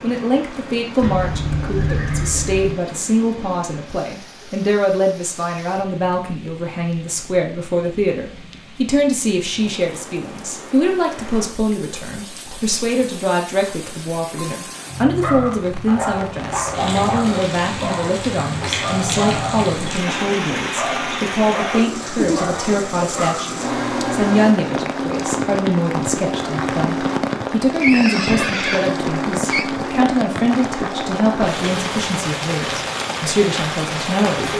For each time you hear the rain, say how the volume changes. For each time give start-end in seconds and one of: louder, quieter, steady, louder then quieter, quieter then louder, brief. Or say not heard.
0.0-34.5 louder.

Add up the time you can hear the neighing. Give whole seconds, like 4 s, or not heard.
4 s.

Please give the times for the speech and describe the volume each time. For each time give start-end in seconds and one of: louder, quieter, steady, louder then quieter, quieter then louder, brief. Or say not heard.
0.0-34.5 steady.